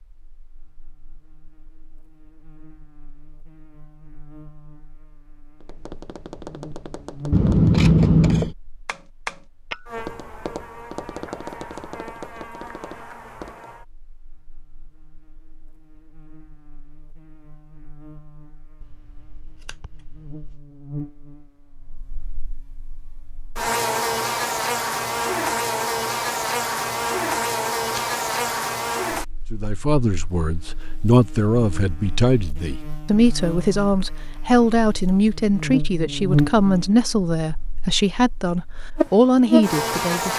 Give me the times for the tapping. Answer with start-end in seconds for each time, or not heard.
5.6-13.7.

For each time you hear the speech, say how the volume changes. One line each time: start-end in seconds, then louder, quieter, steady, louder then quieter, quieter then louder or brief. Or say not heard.
29.5-40.3 steady.